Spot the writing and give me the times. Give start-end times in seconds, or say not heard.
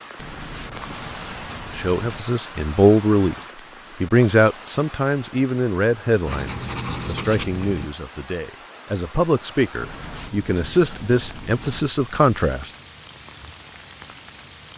0.1-2.2, 6.2-7.9, 9.8-11.8.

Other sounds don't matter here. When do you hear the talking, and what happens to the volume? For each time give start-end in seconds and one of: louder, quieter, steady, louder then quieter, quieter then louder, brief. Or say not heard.
1.8-3.4 brief
4.0-12.7 quieter then louder.